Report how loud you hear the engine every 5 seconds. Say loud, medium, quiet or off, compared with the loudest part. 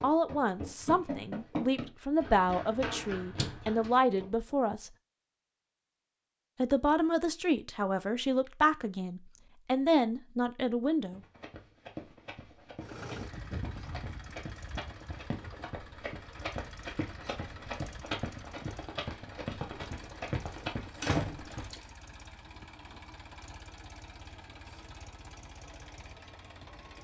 off, off, loud, medium, medium, medium.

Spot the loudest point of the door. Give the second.
21 s.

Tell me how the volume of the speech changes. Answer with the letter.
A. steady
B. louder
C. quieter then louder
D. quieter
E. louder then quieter
A.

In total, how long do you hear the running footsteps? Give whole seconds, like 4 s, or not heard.
15 s.